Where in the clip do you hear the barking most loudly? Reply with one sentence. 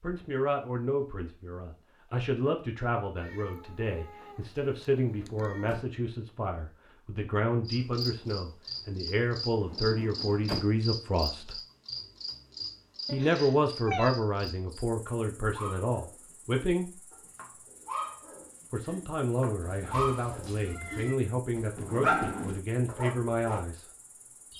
The loudest moment of the barking is at 22 seconds.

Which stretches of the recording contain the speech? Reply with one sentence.
You can hear the speech from 0.0 to 11.6 s, from 13.1 to 16.9 s and from 18.7 to 23.9 s.